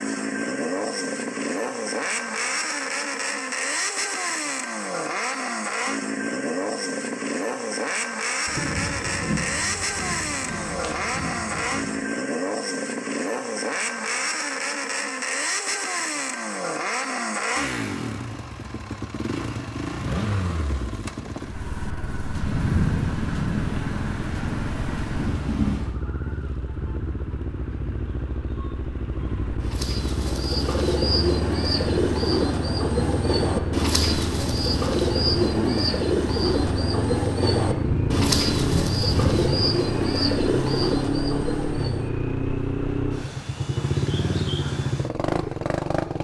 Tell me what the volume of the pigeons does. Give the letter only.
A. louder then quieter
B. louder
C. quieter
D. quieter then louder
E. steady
E.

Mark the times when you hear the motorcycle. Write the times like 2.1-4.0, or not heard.
0.0-46.1.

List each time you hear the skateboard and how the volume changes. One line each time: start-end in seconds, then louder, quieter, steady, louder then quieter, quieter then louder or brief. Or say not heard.
not heard.